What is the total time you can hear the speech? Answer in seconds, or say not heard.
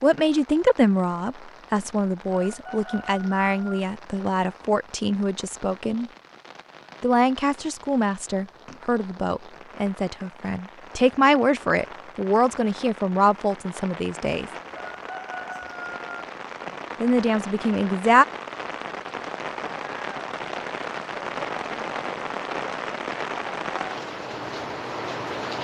15 s.